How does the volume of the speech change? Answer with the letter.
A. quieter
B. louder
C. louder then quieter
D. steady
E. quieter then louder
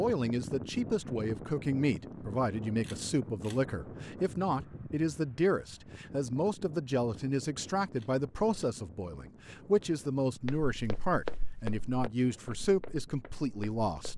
D.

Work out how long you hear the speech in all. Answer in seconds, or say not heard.
14 s.